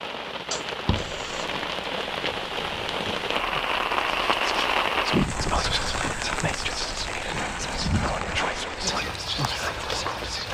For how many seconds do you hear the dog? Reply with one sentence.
The dog can't be heard in this clip.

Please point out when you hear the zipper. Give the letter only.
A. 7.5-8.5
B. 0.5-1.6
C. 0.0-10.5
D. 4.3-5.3
B.